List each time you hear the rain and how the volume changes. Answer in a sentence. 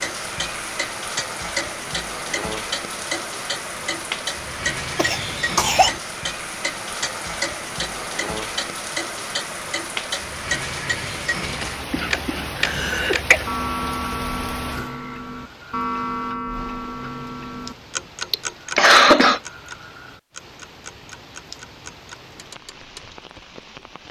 The rain can be heard from 0.0 to 24.0 s, getting quieter.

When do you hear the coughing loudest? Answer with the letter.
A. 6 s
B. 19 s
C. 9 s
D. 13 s
B.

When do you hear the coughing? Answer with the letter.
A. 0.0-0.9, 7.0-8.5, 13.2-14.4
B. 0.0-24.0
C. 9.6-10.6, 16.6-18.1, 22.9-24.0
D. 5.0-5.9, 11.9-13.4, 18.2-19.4
D.